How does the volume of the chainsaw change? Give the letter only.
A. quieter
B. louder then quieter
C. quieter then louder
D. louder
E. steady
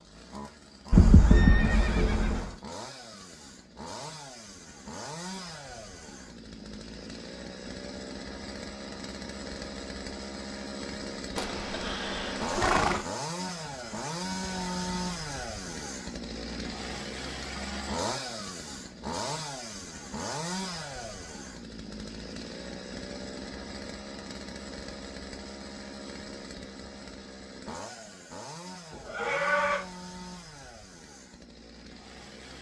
B.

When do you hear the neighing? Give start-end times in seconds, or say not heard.
0.9-2.5, 11.3-13.1, 28.9-29.8.